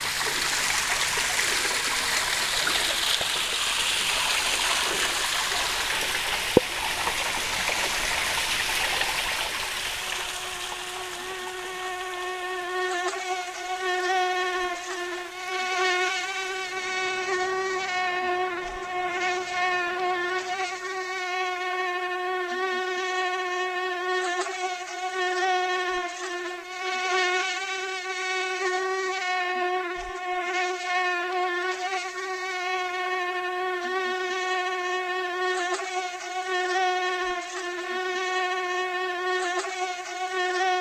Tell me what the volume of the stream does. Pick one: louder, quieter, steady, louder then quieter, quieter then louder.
quieter.